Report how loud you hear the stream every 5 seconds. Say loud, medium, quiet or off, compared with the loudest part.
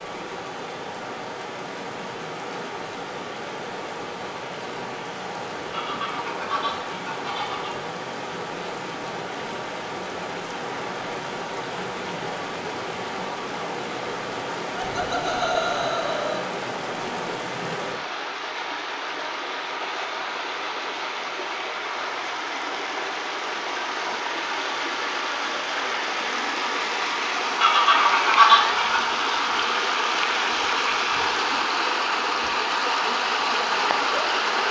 medium, medium, medium, medium, medium, loud, loud.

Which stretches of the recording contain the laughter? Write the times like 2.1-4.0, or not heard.
14.8-16.4.